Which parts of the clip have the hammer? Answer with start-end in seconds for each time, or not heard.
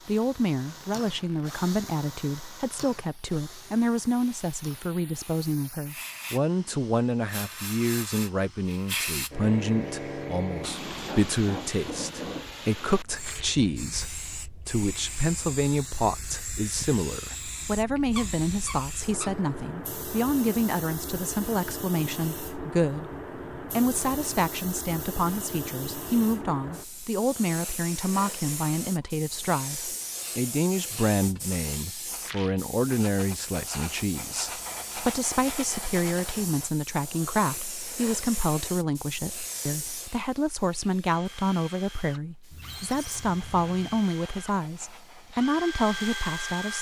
not heard.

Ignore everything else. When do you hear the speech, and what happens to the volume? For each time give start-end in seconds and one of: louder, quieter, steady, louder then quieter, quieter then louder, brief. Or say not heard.
0.1-23.1 steady
23.7-46.7 steady.